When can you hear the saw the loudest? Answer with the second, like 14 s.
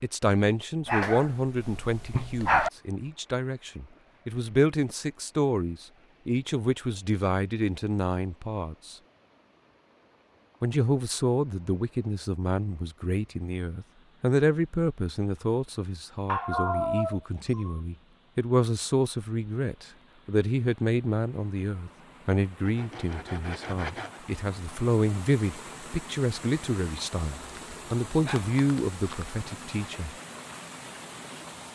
24 s.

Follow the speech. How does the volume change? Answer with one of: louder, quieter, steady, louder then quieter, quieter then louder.
steady.